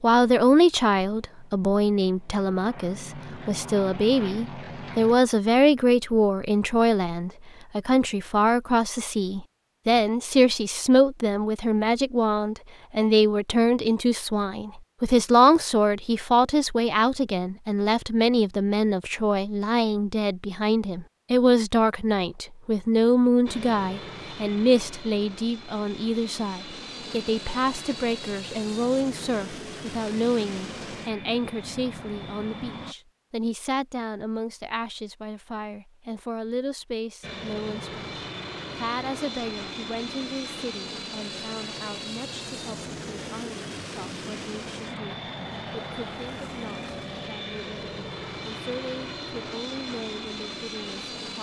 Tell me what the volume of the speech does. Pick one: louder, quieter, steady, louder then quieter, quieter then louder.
quieter.